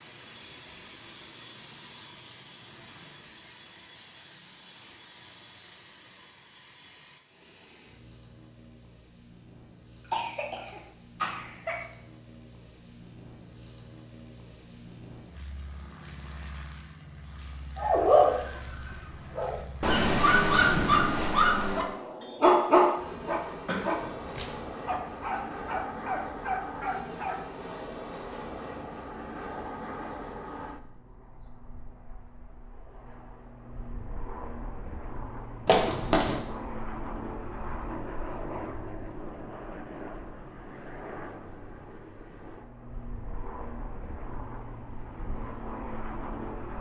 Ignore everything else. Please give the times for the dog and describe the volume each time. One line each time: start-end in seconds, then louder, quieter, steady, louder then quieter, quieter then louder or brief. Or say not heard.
17.8-27.4 quieter.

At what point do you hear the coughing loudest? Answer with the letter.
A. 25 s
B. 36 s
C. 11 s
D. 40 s
B.